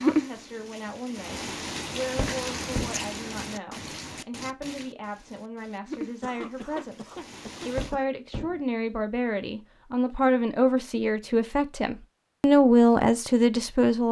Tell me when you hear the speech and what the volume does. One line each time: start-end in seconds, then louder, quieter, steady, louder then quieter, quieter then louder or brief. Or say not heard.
0.0-14.0 louder.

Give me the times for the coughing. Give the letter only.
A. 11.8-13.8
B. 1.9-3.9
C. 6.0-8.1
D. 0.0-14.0
C.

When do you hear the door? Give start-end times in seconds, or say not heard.
2.1-3.0, 7.8-8.6.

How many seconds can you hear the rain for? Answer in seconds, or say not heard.
8 s.